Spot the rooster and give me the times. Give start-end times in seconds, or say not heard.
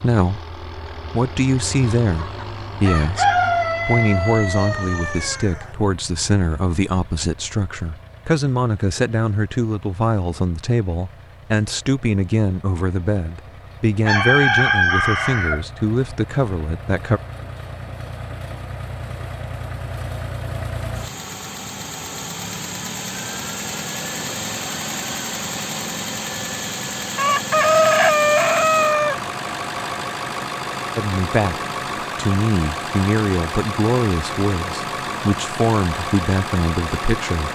1.9-5.7, 14.1-15.6, 27.1-29.1.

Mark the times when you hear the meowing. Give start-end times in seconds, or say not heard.
not heard.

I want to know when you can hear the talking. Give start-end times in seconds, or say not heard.
0.0-17.2, 30.9-37.5.